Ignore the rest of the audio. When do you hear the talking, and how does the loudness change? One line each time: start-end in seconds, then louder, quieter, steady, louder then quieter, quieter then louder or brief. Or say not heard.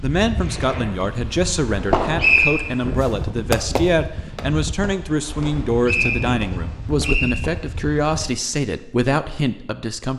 0.0-10.1 steady.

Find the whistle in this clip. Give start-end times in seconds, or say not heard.
2.1-2.6, 5.8-7.3.